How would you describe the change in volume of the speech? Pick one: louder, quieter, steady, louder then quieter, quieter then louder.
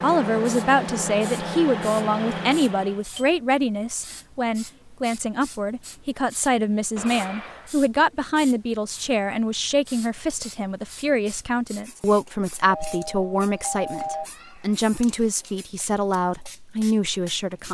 steady.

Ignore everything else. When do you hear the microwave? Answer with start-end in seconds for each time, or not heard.
0.0-3.0.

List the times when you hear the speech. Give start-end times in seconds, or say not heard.
0.0-17.6.